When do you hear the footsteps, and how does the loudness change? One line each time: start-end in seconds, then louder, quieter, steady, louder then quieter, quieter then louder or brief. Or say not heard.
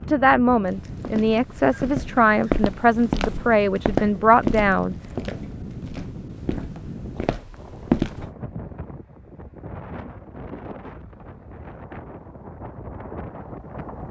0.7-8.3 louder then quieter.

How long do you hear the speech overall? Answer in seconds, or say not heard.
5 s.